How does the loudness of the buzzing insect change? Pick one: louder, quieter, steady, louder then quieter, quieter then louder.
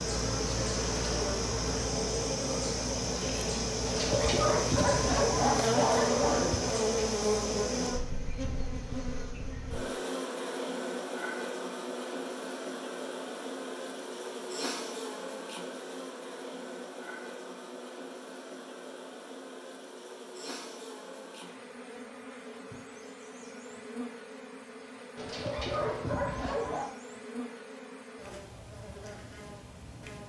quieter.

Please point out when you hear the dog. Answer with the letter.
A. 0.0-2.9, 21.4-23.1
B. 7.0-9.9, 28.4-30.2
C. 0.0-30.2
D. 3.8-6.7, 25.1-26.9
D.